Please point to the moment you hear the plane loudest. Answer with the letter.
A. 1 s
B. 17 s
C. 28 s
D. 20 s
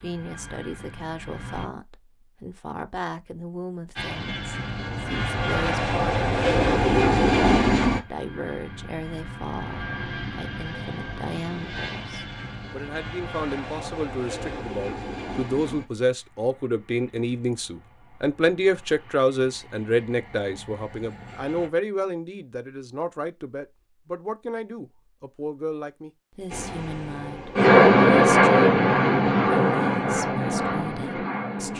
C.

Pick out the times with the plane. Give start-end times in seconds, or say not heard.
0.1-1.6, 4.0-21.7, 26.5-31.7.